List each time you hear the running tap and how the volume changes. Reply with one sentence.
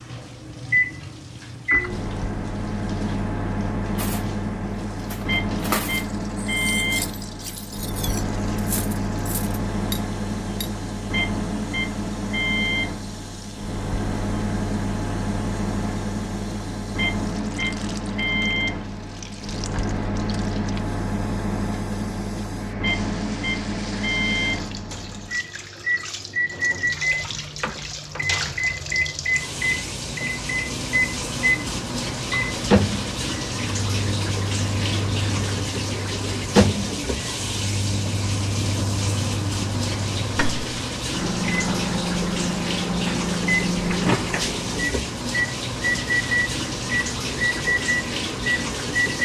You can hear the running tap from 0.0 to 49.2 s, getting louder.